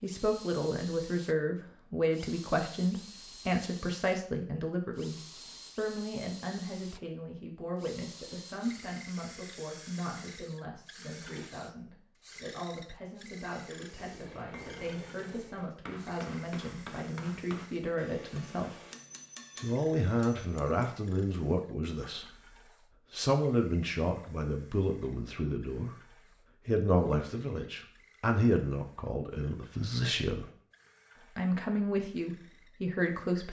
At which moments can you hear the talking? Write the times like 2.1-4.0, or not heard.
0.0-18.8, 19.6-25.9, 26.6-30.5, 31.2-33.4.